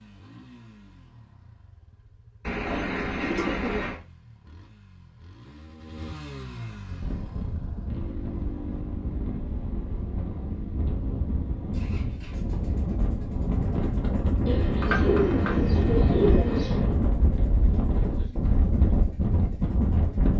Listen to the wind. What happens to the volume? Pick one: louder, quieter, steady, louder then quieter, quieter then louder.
louder.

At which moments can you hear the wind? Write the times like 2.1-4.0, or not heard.
6.8-20.3.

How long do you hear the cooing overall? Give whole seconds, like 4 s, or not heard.
4 s.